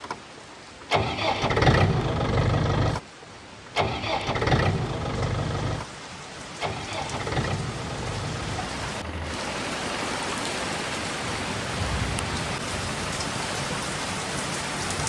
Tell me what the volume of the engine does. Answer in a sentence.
The loudness of the engine goes down.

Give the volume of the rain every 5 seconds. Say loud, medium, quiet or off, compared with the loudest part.
quiet, medium, loud.